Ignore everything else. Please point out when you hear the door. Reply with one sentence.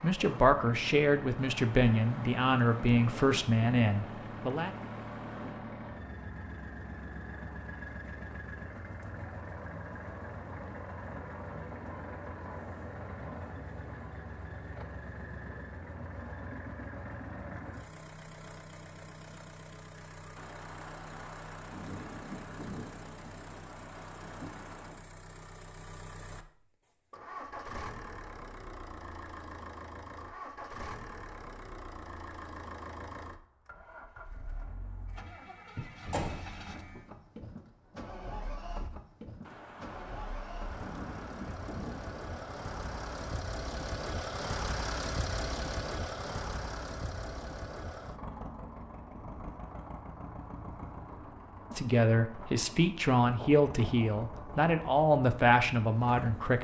You can hear the door from 35.8 to 36.5 s.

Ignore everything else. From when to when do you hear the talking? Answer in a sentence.
The talking can be heard from 0.0 to 4.8 s and from 51.8 to 56.5 s.